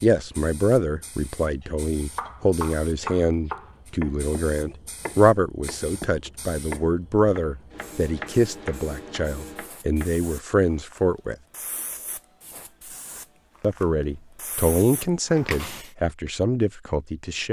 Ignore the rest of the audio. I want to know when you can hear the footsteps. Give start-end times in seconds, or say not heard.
not heard.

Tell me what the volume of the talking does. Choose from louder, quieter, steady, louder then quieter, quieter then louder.
steady.